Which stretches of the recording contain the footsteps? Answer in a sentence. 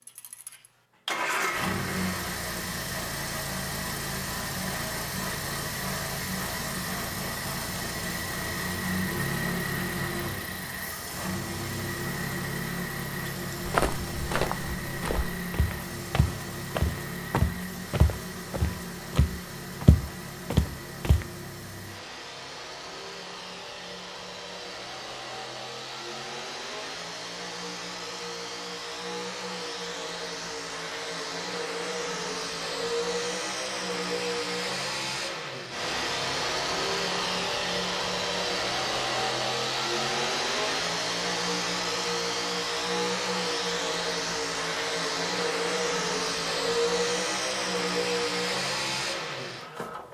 The footsteps can be heard from 13.6 to 21.2 s.